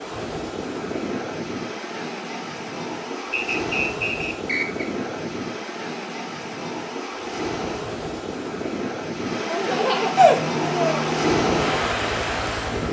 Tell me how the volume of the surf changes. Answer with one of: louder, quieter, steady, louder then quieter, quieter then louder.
louder.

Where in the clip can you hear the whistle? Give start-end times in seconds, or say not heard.
3.3-4.8.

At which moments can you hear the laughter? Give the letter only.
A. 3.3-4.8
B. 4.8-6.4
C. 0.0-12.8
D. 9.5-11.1
D.